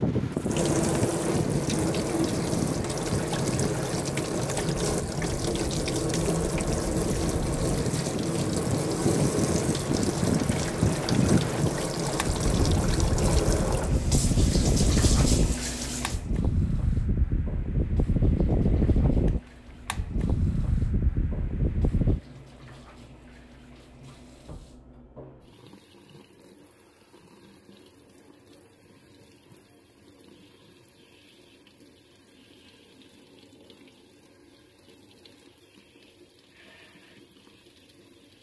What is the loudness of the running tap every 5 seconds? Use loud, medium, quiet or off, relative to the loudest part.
loud, loud, loud, medium, quiet, quiet, quiet, quiet.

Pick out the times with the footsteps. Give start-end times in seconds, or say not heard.
not heard.